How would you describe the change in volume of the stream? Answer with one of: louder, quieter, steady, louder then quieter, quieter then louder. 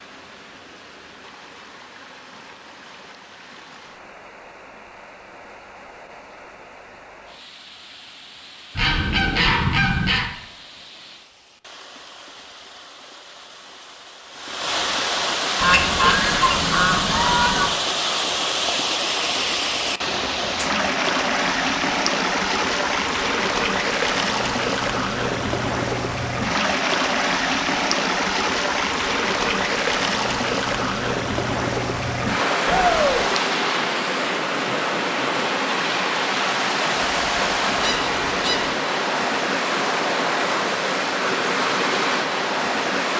louder.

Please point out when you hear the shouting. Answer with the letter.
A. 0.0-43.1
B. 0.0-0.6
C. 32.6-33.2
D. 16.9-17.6
C.